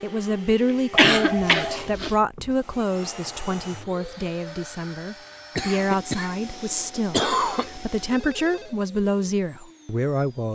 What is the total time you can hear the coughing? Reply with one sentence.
The coughing can be heard for 3 seconds in total.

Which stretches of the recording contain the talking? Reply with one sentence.
You can hear the talking from 0.0 to 10.5 s.